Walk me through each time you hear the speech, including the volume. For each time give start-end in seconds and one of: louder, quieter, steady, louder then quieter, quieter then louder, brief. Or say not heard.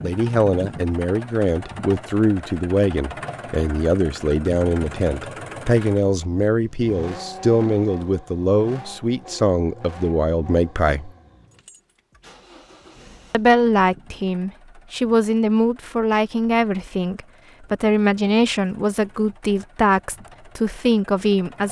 0.0-11.1 steady
13.3-21.6 steady.